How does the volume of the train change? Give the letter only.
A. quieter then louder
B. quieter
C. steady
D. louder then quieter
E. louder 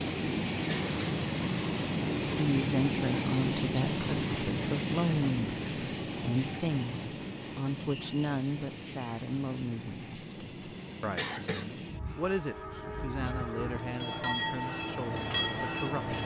A.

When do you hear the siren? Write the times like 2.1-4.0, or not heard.
not heard.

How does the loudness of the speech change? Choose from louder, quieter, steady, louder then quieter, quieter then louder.
quieter.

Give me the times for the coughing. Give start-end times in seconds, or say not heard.
0.7-1.2, 11.2-11.7.